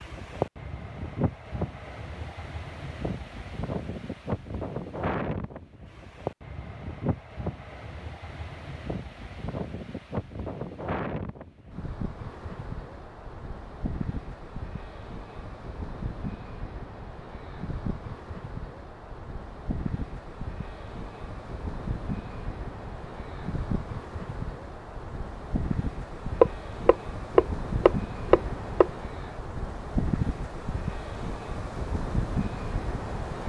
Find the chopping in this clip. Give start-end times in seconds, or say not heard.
26.4-28.9.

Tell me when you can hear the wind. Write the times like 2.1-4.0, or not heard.
0.0-33.4.